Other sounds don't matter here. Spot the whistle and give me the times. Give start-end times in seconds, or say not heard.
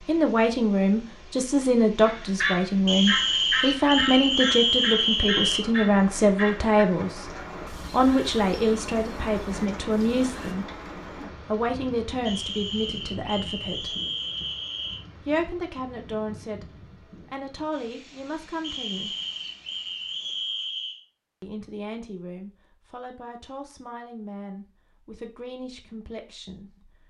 2.9-5.7, 12.2-15.0, 18.6-21.0.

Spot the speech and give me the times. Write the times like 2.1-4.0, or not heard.
0.1-10.7, 11.4-13.9, 15.2-19.1, 21.4-27.0.